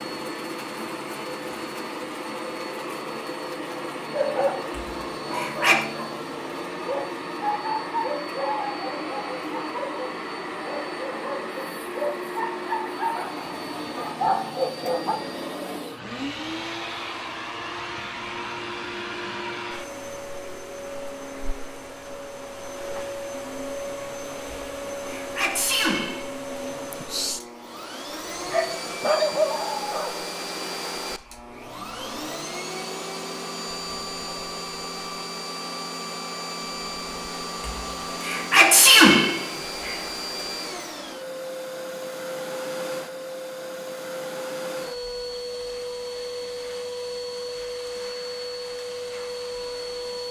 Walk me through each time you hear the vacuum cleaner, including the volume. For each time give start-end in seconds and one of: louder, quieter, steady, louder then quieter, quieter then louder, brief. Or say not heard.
0.0-50.2 steady.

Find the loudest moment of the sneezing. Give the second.
39 s.